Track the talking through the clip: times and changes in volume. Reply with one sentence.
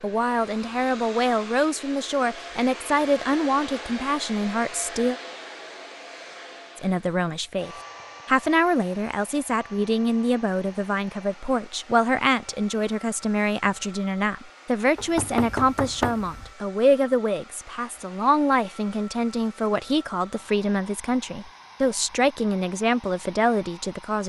You can hear the talking from 0.0 to 5.2 s, at a steady volume; and from 6.8 to 24.2 s, at a steady volume.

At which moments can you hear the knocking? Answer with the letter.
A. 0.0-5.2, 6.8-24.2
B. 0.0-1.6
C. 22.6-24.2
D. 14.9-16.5
D.